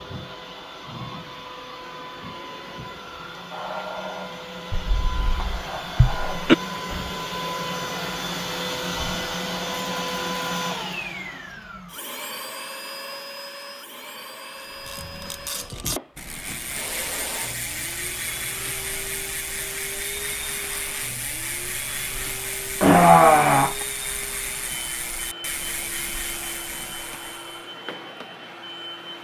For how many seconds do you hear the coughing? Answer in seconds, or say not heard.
3 s.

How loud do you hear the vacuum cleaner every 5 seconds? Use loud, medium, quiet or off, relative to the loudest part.
medium, loud, loud, medium, medium, medium.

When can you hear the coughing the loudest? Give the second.
23 s.